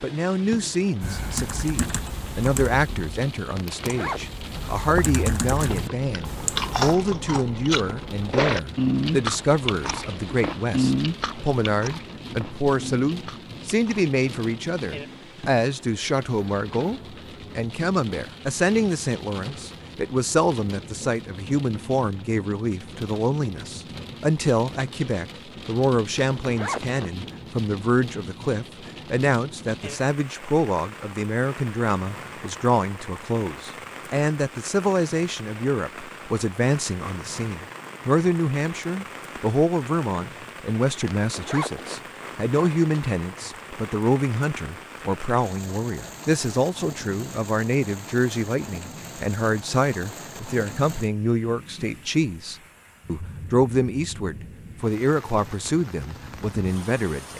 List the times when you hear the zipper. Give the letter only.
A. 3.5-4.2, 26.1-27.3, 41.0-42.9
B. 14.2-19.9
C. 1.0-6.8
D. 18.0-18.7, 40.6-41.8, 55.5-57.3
A.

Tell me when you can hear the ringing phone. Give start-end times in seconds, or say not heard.
not heard.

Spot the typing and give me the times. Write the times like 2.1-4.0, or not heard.
1.0-6.8.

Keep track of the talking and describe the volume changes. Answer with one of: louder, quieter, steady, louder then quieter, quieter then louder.
steady.